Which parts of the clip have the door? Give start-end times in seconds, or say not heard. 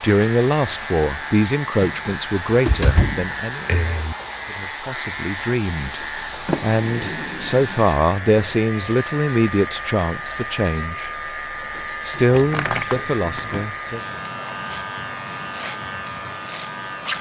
2.5-4.2, 6.5-7.8, 12.3-13.7.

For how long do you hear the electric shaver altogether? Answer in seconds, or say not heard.
17 s.